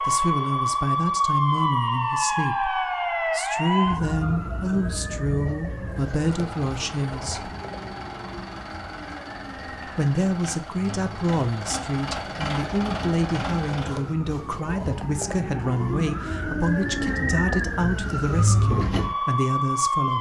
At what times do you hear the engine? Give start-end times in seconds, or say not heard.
5.9-14.1.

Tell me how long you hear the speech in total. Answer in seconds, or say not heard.
18 s.